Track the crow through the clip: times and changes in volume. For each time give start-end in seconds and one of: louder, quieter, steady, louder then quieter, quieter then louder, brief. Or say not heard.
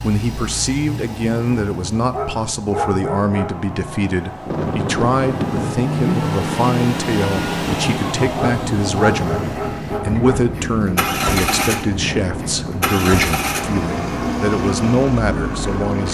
not heard.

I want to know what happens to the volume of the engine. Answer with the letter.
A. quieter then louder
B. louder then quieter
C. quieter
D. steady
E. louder
E.